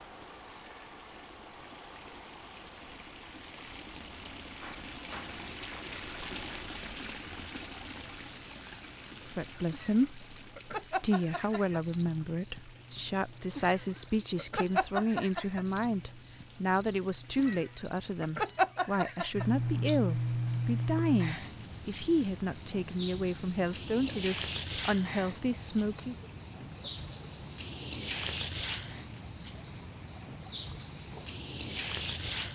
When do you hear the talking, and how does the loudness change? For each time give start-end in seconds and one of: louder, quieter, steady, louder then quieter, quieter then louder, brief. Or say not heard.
9.3-10.2 brief
11.0-26.1 steady.